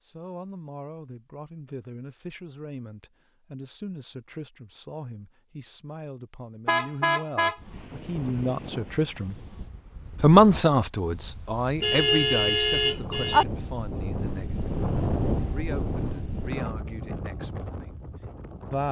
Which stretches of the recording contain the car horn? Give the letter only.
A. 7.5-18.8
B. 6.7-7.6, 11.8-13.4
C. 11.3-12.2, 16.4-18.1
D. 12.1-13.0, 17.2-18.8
B.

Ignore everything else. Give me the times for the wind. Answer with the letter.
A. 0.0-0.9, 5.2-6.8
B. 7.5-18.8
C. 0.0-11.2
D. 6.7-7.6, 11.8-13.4
B.